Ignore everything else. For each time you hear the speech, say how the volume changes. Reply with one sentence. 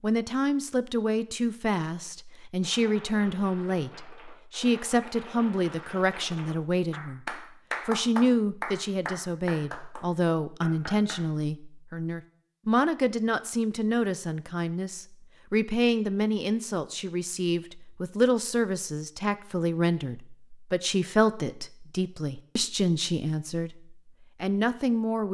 You can hear the speech from 0.0 to 25.2 s, at a steady volume.